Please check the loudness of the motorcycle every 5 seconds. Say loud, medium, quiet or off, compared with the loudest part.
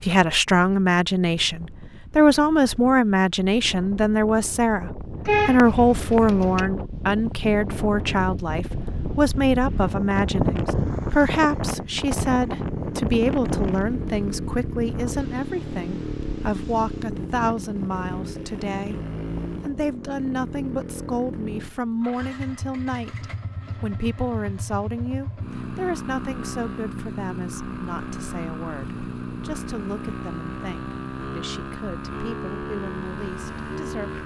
off, off, loud, loud, loud, loud, loud.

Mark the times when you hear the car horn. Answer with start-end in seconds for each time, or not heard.
5.2-6.7.